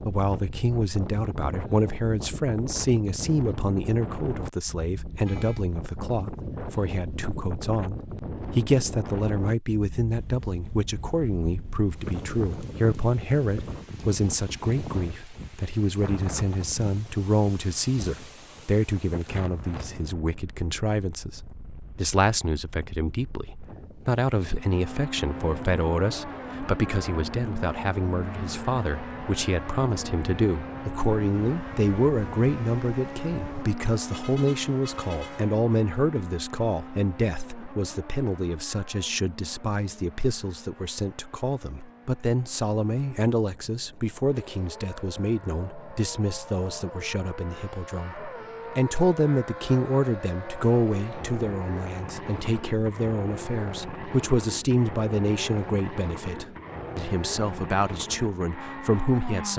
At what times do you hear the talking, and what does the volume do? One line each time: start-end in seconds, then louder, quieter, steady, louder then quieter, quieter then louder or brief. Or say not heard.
0.1-59.5 steady.